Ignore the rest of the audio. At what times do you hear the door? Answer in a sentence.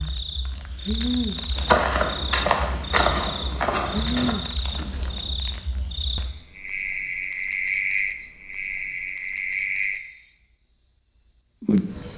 You can hear the door from 4.7 to 5.4 s.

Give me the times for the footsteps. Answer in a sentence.
The footsteps can be heard from 1.6 to 4.3 s.